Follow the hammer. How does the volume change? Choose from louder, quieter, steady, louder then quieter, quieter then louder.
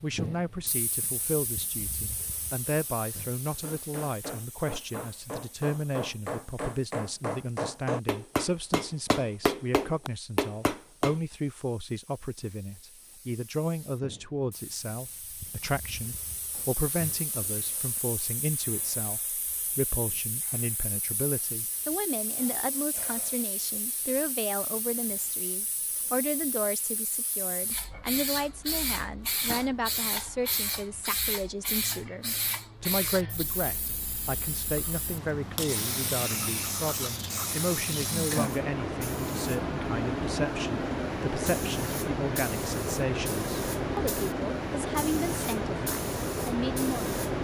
louder.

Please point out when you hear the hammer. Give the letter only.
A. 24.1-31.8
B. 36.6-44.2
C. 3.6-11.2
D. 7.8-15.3
C.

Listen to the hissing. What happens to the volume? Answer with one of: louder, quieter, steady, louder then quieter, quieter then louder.
louder.